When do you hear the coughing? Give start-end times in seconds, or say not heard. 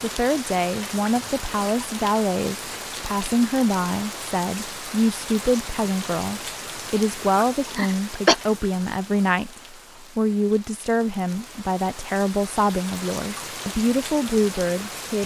7.3-8.3.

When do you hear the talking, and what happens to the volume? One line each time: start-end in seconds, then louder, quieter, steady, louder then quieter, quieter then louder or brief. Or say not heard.
0.0-15.2 steady.